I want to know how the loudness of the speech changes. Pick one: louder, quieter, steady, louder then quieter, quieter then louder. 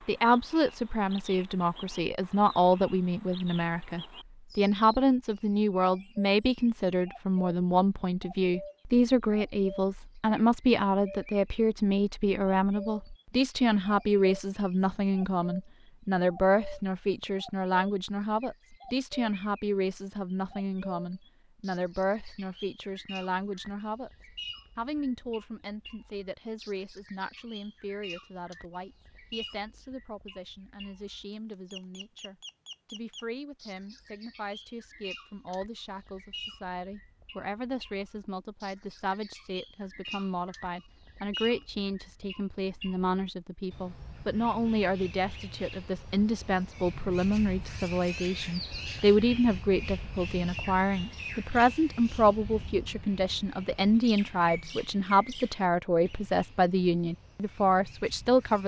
quieter then louder.